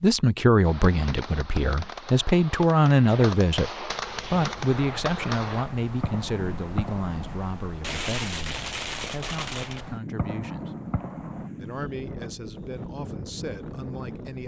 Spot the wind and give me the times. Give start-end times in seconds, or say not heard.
3.9-14.4.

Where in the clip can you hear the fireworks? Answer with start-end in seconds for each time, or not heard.
0.6-11.5.